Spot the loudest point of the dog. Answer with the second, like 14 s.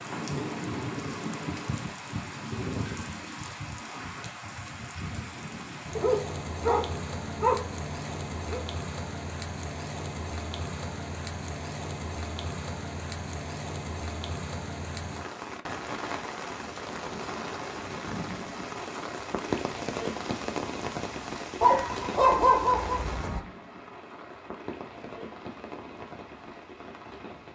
22 s.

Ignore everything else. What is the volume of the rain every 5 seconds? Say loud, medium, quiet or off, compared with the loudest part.
loud, loud, loud, loud, loud, medium.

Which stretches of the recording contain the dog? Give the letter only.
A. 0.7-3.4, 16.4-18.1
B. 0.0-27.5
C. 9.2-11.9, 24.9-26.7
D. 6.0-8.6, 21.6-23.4
D.